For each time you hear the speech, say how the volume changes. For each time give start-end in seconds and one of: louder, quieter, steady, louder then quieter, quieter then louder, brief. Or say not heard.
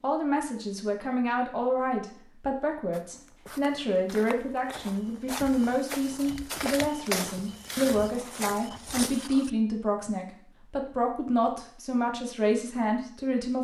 0.0-13.5 steady.